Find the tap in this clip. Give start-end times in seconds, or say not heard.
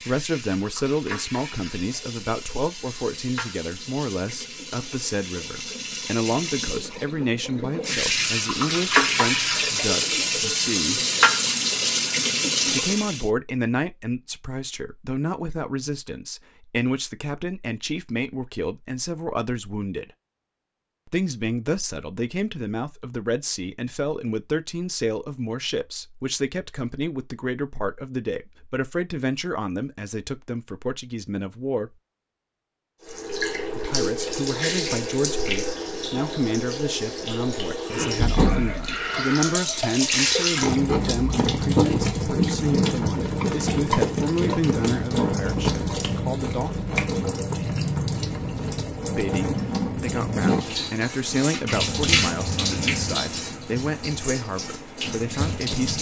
0.0-13.2, 33.0-55.9.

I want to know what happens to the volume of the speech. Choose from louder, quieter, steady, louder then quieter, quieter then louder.
steady.